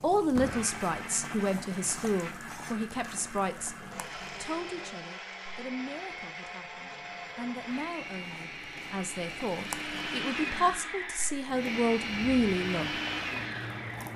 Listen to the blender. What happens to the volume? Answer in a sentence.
The volume of the blender goes up.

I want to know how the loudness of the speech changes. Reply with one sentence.
The loudness of the speech goes down, then up.